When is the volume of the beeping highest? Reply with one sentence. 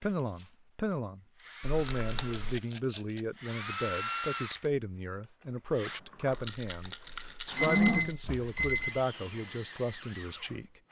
The loudest moment of the beeping is at 8 seconds.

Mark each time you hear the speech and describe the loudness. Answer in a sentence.
The speech can be heard from 0.0 to 10.7 s, at a steady volume.